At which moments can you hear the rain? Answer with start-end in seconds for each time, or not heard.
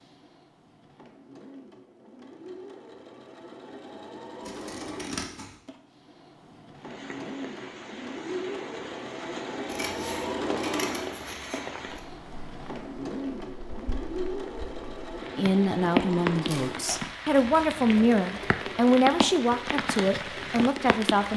6.7-21.3.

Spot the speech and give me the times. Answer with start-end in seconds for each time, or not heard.
15.3-21.3.